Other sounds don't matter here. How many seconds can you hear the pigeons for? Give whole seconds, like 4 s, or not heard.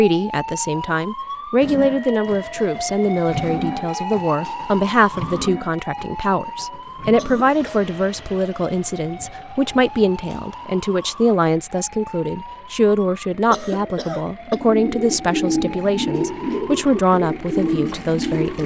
4 s.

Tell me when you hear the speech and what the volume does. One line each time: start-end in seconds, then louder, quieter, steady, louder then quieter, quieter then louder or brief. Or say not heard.
0.0-18.6 steady.